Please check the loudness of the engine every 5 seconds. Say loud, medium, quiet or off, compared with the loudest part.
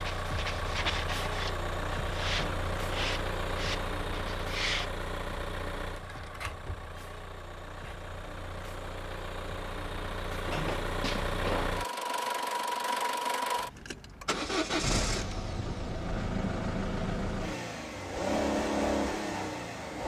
loud, medium, loud, loud.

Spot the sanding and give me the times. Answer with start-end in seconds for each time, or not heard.
0.0-4.9.